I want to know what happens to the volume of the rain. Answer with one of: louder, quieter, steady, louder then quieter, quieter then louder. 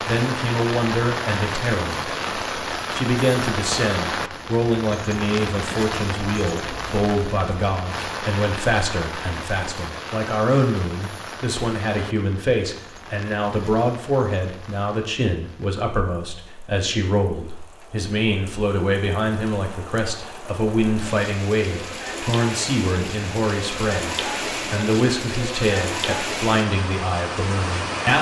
quieter then louder.